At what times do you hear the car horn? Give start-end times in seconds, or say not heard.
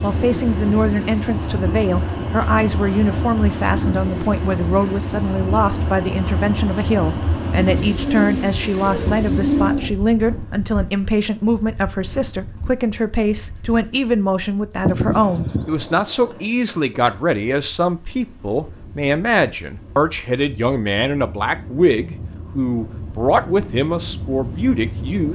not heard.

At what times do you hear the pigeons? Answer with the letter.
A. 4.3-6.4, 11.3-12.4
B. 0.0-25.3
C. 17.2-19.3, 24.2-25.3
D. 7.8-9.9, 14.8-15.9
D.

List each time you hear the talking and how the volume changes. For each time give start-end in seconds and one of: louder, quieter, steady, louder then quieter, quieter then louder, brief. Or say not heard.
0.0-25.3 steady.